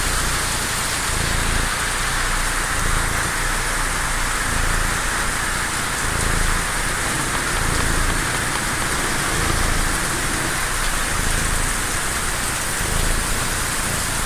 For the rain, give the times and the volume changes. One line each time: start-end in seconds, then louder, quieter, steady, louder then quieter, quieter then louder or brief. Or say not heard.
0.0-14.2 steady.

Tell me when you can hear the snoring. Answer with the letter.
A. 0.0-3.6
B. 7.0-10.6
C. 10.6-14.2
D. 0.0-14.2
B.